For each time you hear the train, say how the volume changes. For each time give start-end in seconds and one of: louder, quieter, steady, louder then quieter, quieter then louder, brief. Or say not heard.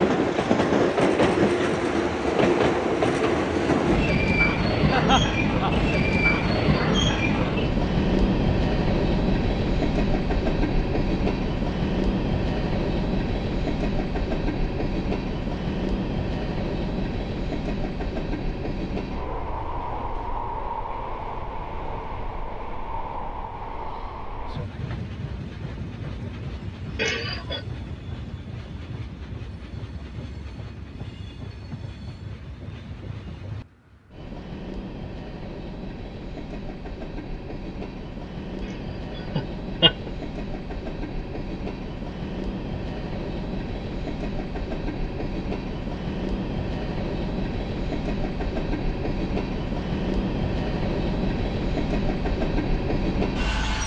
0.0-53.8 quieter then louder.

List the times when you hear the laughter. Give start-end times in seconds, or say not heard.
4.8-5.8, 26.9-27.6, 39.4-40.1.